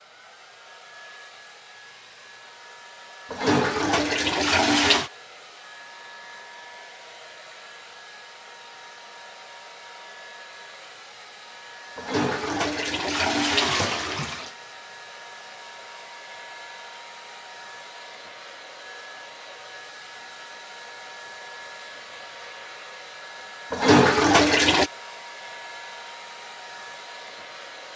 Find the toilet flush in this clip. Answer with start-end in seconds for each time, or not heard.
3.3-5.1, 11.9-14.5, 23.7-24.9.